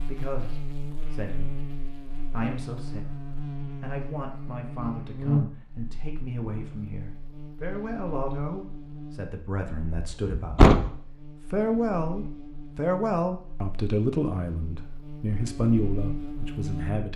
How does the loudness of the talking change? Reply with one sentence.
The loudness of the talking goes up.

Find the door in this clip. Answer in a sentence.
You can hear the door from 9.9 to 10.9 s.